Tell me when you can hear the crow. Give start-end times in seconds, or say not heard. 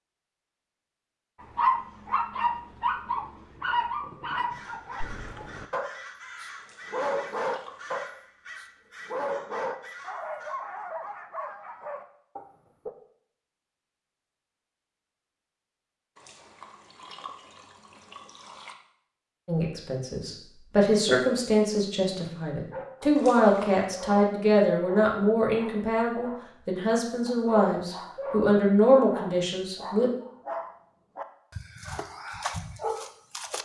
4.5-10.7.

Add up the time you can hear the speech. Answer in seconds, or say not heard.
11 s.